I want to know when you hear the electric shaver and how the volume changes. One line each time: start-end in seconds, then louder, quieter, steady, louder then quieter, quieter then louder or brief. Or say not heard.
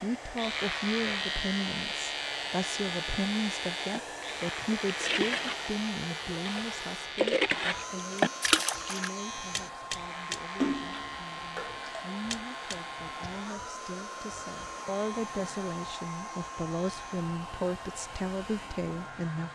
0.3-19.4 quieter.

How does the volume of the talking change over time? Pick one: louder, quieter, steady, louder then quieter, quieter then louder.
quieter then louder.